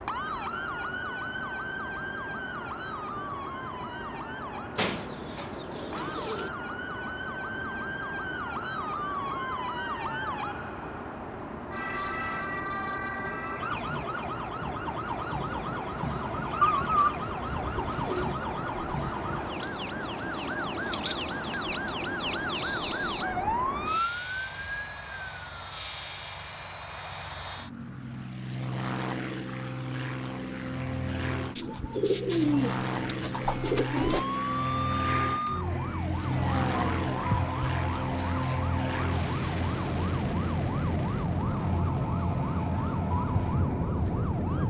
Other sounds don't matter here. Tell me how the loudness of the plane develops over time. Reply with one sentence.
The loudness of the plane goes up.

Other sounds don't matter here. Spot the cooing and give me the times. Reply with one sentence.
You can hear the cooing from 4.8 to 6.5 s, from 16.6 to 18.4 s and from 31.6 to 34.2 s.